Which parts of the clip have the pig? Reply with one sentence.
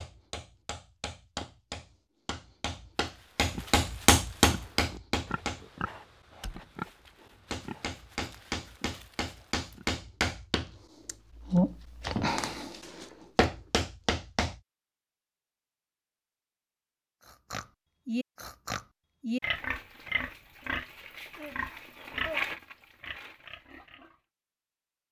The pig can be heard from 3.0 to 9.8 s and from 17.2 to 24.1 s.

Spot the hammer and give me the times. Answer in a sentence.
You can hear the hammer from 0.0 to 5.7 s and from 7.5 to 14.6 s.